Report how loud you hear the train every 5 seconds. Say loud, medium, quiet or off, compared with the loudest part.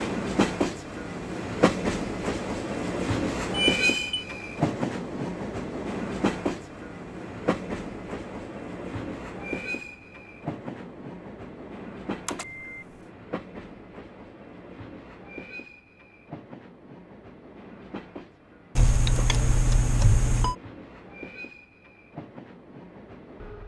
loud, medium, quiet, quiet, quiet.